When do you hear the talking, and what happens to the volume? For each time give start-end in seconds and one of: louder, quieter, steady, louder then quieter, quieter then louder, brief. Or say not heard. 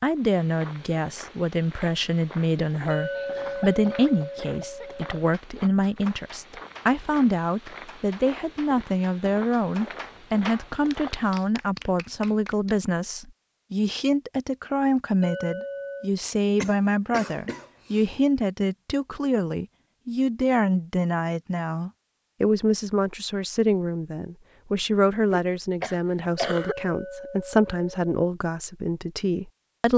0.0-29.9 steady.